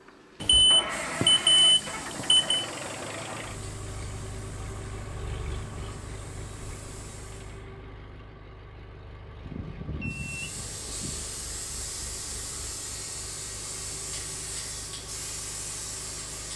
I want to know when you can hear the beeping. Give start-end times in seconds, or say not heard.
0.4-2.6, 9.4-11.2.